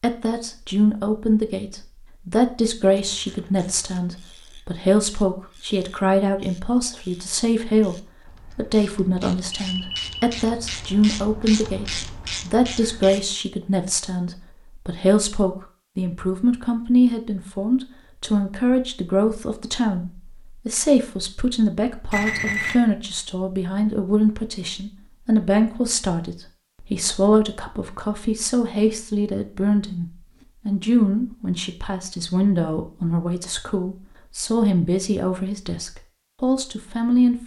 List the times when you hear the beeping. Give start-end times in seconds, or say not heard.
9.5-10.2, 22.1-22.8.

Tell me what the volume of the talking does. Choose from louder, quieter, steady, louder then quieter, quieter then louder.
steady.